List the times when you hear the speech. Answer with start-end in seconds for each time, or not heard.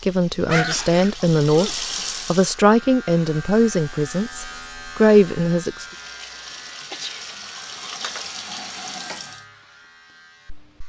0.0-5.8.